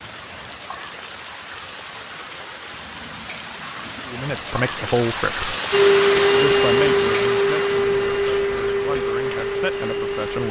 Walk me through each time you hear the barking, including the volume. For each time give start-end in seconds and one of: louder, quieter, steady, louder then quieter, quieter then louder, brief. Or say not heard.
not heard.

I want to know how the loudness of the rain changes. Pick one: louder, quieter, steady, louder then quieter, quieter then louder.
louder then quieter.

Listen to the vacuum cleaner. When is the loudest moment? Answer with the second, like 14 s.
6 s.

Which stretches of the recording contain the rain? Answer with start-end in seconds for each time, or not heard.
0.0-10.4.